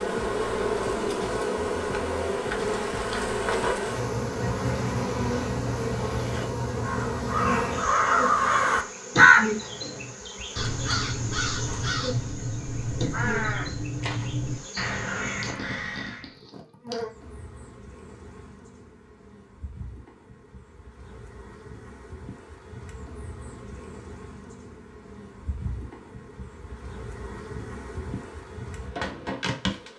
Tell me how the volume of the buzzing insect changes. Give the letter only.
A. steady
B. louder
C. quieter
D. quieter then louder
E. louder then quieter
D.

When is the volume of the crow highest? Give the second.
9 s.